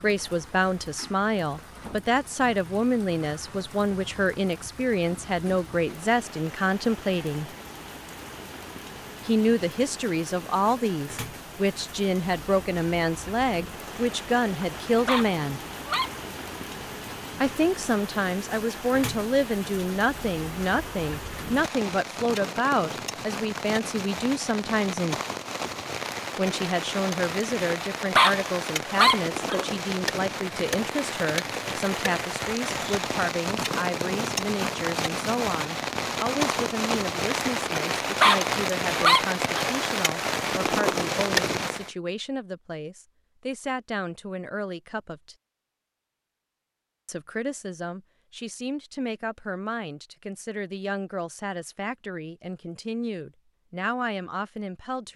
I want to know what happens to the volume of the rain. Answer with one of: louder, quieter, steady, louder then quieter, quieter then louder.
louder.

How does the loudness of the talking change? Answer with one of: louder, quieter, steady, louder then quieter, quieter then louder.
quieter.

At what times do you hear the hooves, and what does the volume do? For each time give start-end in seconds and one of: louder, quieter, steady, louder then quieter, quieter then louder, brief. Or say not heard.
not heard.